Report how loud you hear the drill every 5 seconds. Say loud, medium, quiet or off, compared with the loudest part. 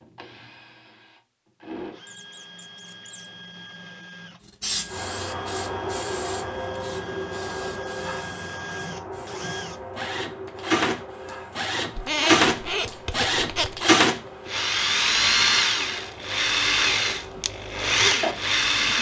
quiet, quiet, loud, loud.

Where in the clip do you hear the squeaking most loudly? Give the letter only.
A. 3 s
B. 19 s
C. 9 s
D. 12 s
D.